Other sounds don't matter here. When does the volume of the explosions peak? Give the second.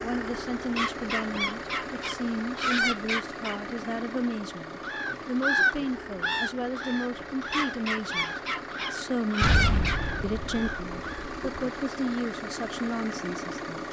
10 s.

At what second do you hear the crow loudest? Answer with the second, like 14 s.
6 s.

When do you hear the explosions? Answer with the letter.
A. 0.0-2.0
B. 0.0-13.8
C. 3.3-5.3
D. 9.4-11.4
D.